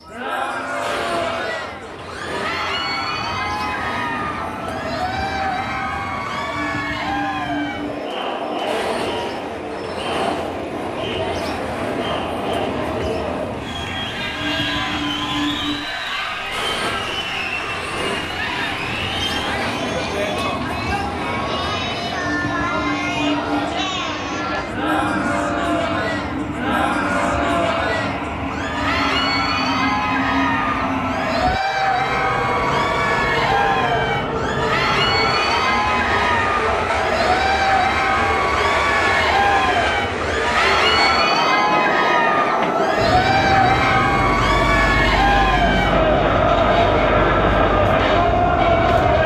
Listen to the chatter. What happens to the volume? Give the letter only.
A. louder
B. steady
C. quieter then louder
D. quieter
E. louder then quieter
A.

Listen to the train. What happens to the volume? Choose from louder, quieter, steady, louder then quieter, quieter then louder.
louder.